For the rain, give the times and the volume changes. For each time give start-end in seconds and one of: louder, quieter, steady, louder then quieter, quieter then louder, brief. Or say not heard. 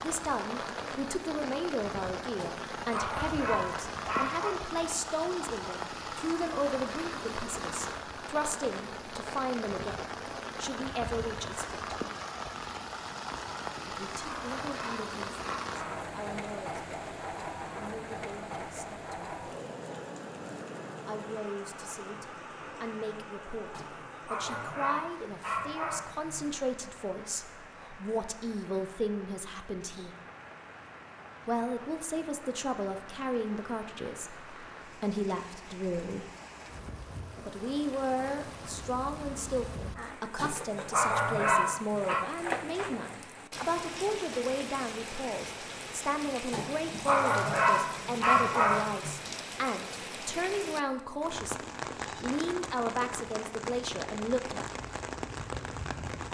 0.0-56.2 quieter then louder.